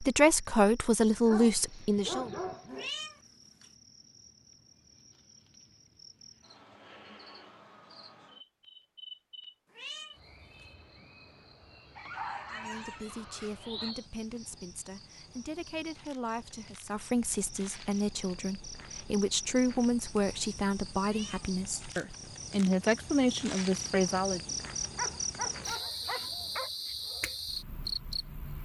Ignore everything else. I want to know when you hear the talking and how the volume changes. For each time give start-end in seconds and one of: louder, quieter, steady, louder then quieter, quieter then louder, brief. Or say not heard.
0.0-2.3 brief
12.5-24.6 louder.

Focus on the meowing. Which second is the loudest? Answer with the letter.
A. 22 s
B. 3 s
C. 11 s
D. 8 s
B.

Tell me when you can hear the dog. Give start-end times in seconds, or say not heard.
1.2-2.9, 11.9-13.9, 24.9-26.7.